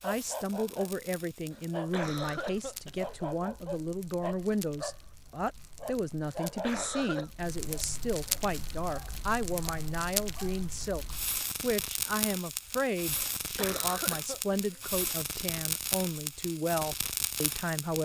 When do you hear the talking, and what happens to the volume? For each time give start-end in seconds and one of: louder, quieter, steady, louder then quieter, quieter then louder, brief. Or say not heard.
0.0-18.0 steady.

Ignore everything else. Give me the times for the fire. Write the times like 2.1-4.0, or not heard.
0.0-18.0.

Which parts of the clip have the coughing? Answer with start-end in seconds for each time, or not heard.
1.5-3.2, 6.2-7.3, 13.3-14.9.